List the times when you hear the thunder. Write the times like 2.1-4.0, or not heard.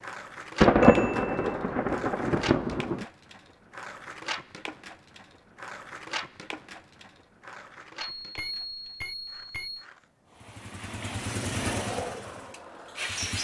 0.6-3.0.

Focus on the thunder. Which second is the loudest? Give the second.
1 s.